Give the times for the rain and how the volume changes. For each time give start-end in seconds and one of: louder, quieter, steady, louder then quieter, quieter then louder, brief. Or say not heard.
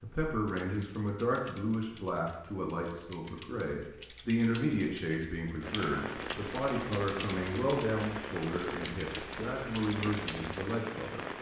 5.6-11.3 steady.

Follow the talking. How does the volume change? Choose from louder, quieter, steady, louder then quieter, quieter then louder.
steady.